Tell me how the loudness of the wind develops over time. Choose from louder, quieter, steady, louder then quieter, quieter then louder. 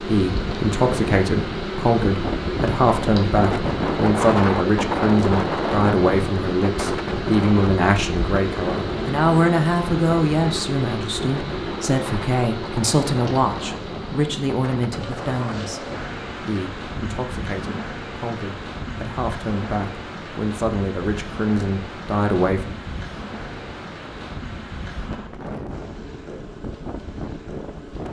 quieter.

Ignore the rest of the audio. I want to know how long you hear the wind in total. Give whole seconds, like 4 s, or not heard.
28 s.